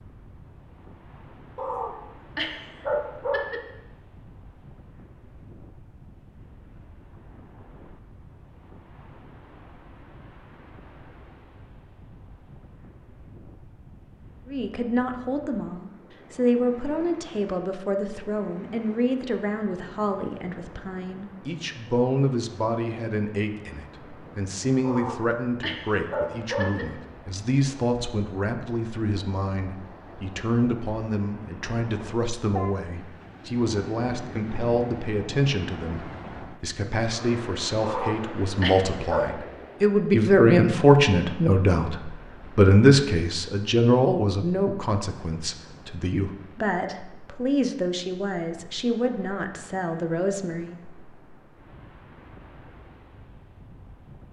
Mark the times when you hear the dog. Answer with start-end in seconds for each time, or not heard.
1.6-3.6, 24.8-26.9, 37.8-39.3.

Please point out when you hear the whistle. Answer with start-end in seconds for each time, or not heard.
not heard.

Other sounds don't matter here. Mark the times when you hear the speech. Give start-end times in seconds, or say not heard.
14.4-50.8.